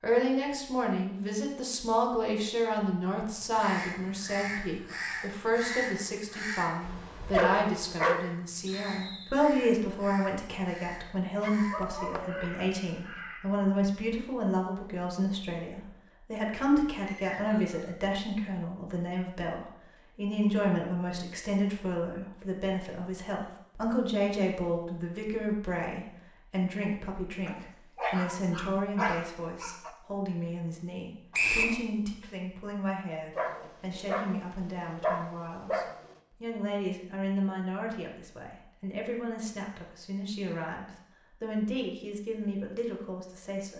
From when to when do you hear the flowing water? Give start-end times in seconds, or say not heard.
not heard.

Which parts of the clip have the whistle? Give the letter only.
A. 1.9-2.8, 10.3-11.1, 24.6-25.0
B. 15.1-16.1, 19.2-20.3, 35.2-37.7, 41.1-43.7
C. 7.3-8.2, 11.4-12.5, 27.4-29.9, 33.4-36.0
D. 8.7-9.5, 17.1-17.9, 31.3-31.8
D.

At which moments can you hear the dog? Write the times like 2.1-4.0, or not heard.
7.3-8.2, 11.4-12.5, 27.4-29.9, 33.4-36.0.